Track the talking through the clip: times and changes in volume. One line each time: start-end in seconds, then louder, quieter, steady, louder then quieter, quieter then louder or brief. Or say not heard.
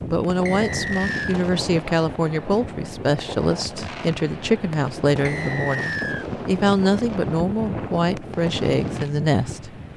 0.1-9.7 steady.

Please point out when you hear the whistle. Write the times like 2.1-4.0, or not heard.
0.5-1.4, 5.2-6.2.